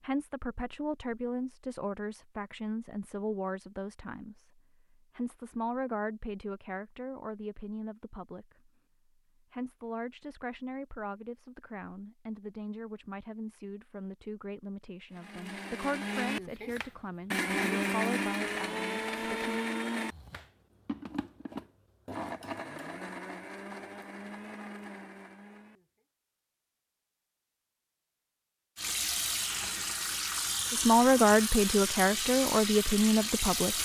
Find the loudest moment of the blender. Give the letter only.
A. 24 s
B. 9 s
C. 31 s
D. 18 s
D.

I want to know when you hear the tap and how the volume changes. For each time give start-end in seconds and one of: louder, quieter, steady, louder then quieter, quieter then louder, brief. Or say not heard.
28.8-33.8 steady.